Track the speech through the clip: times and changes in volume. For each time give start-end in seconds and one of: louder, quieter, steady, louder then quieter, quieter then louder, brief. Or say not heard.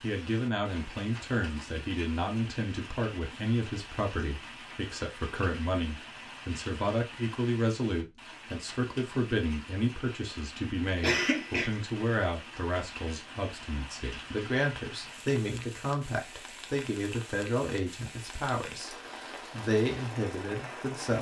0.0-21.1 steady.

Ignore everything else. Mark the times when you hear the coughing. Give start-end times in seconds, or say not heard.
11.0-11.7.